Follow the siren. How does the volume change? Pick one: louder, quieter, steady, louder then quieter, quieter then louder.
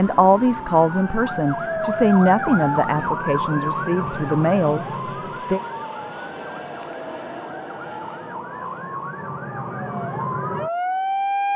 quieter then louder.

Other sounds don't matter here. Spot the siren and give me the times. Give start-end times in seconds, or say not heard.
0.0-11.5.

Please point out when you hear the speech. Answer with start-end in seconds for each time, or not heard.
0.0-5.6.